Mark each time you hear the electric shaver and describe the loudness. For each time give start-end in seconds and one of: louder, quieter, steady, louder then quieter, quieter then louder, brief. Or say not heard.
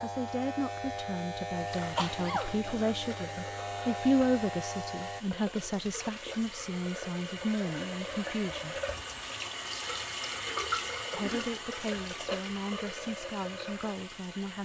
0.0-5.2 steady.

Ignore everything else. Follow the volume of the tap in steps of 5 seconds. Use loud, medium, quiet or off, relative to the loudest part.
medium, loud, loud.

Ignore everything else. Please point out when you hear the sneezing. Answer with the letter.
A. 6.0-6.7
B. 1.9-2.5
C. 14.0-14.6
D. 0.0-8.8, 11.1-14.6
B.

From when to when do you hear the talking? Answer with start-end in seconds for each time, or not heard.
0.0-8.8, 11.1-14.6.